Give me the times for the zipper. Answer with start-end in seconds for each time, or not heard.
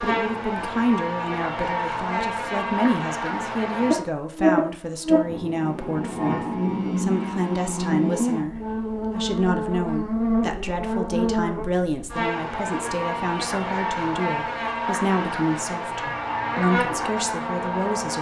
not heard.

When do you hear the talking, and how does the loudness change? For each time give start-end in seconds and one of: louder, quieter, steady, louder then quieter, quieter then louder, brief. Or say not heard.
0.0-18.1 steady.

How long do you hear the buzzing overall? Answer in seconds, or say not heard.
18 s.